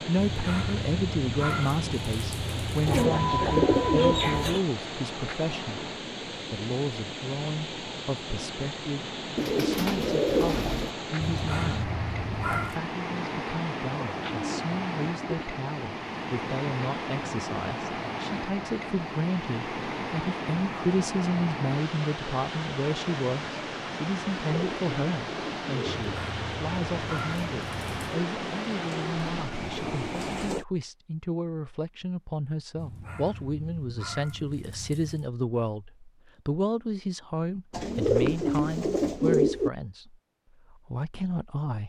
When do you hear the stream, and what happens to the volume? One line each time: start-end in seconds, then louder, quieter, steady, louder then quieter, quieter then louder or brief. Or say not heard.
0.0-30.6 steady.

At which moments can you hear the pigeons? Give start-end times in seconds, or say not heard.
2.9-4.7, 9.3-10.9, 14.2-15.4, 24.4-26.1, 28.1-30.6, 37.7-39.7.